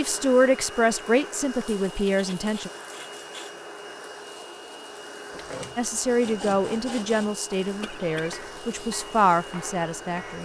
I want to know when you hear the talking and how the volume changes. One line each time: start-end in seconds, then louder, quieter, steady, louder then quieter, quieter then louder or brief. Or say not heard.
0.0-2.7 brief
5.8-10.3 quieter then louder.